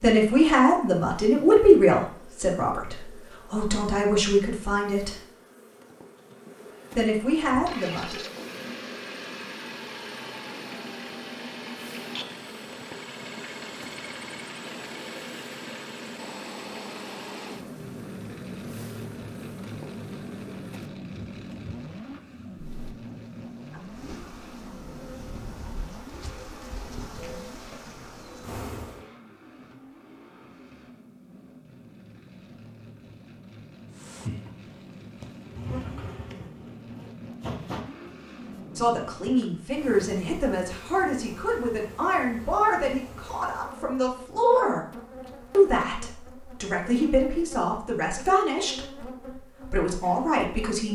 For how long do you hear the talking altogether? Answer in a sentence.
The talking can be heard for 18 seconds in total.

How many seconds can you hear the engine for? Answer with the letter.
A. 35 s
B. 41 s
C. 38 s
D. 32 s
D.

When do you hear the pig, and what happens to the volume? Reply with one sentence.
The pig can't be heard in this clip.